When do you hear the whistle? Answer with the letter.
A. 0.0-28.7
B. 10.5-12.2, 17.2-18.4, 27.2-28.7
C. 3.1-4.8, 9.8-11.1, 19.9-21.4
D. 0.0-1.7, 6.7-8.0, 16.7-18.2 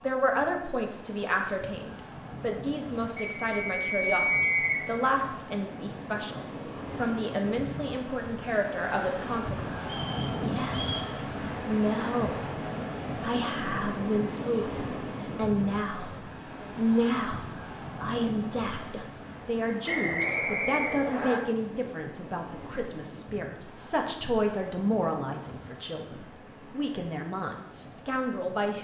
C.